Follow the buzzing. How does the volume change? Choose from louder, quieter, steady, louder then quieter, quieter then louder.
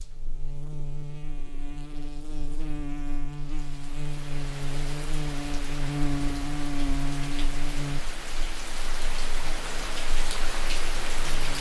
louder then quieter.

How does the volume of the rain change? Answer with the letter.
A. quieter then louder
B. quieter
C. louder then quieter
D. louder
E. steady
D.